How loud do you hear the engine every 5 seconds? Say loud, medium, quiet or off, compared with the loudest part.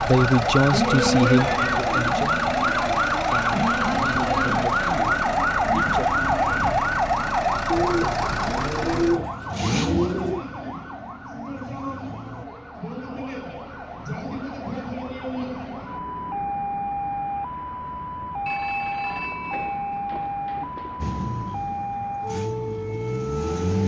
loud, loud, quiet, off, loud.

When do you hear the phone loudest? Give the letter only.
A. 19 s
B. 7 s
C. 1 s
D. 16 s
A.